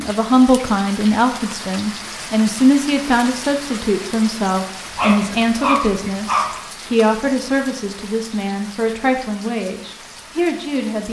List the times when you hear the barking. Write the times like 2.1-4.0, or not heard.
5.0-6.5.